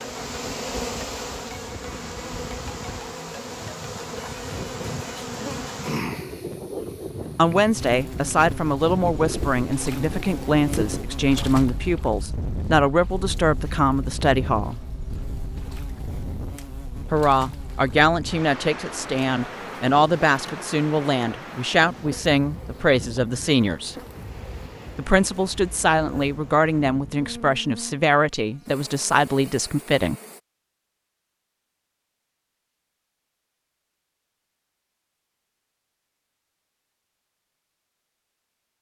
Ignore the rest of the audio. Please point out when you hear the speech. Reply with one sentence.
The speech can be heard from 7.3 to 14.8 s, from 17.1 to 23.9 s and from 24.9 to 30.1 s.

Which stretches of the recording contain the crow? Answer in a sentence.
The crow can't be heard in this clip.